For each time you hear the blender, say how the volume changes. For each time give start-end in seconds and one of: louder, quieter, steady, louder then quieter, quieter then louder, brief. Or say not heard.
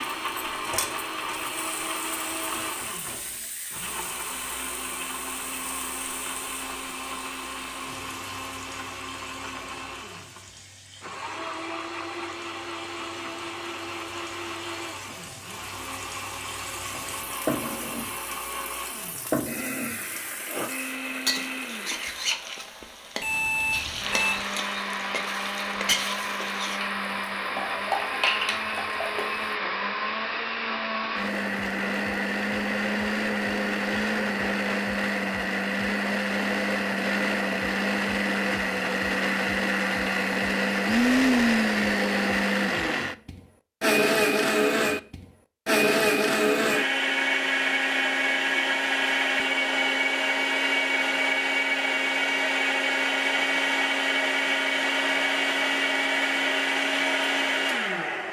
0.0-58.2 louder.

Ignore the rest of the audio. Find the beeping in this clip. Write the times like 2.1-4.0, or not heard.
23.2-24.4.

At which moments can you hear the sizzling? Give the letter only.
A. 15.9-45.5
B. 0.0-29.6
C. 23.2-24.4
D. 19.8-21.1
B.